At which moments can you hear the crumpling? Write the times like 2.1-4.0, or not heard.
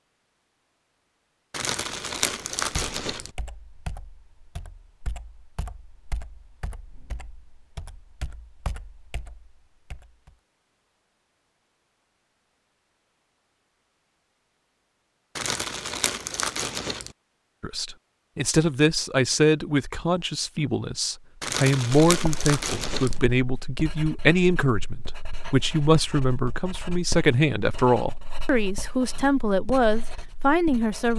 1.5-3.3, 15.3-17.1, 21.4-23.2.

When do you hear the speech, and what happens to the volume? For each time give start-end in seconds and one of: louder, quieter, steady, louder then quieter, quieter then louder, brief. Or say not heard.
17.6-31.1 steady.